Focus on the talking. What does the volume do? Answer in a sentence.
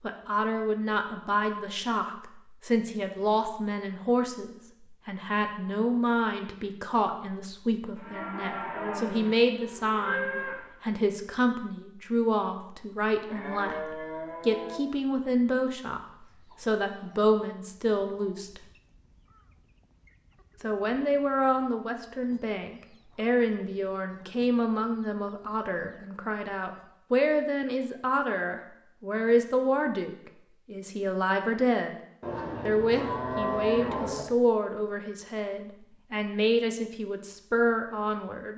The loudness of the talking stays about the same.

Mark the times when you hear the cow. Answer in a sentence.
You can hear the cow from 8.0 to 10.7 s, from 13.2 to 14.8 s and from 32.2 to 34.2 s.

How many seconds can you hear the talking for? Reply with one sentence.
You can hear the talking for 36 seconds altogether.